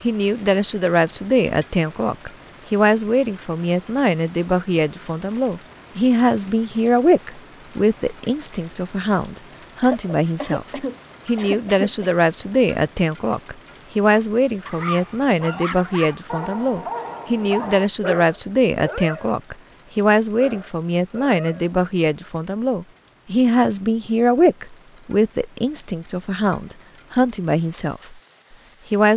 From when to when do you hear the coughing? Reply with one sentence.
The coughing can be heard from 9.8 to 12.1 s.